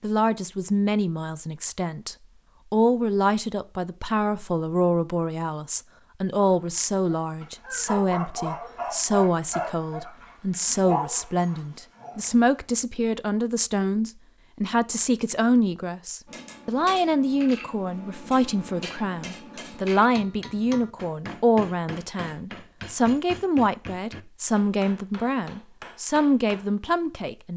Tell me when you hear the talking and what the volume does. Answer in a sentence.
The talking can be heard from 0.0 to 27.5 s, at a steady volume.